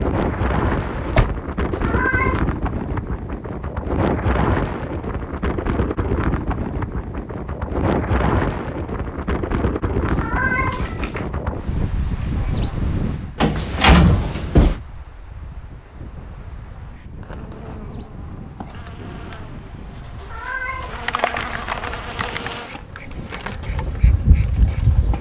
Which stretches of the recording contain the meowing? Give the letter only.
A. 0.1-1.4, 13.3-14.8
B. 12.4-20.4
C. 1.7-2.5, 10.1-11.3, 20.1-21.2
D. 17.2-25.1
C.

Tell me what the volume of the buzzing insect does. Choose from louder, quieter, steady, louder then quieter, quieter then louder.
louder.